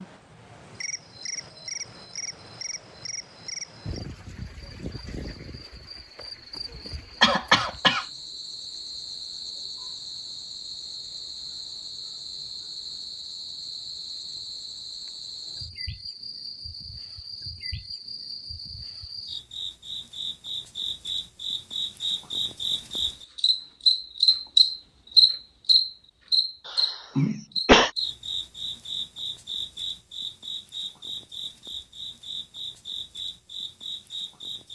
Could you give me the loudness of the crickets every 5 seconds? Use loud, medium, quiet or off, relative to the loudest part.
quiet, quiet, quiet, quiet, loud, loud, quiet.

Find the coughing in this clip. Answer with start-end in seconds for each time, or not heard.
7.2-8.1, 26.6-27.9.